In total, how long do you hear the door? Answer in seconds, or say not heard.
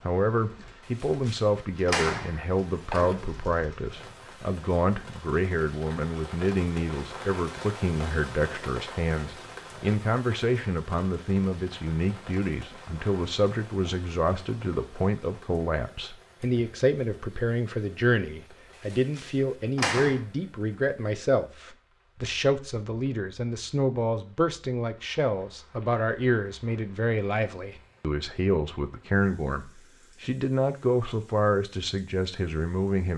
4 s.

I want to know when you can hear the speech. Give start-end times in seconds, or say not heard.
0.0-33.1.